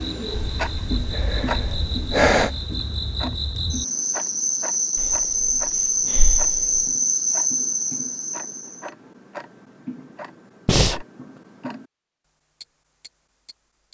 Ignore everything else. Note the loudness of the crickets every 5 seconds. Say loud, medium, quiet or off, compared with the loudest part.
medium, loud, off.